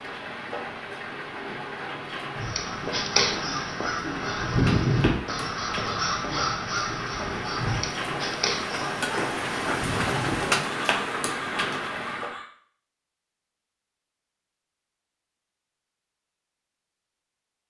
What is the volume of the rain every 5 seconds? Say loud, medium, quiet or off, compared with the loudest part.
medium, loud, loud, off.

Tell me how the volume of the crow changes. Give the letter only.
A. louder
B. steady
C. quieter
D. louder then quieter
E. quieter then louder
C.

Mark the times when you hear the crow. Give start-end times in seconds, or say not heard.
2.4-12.5.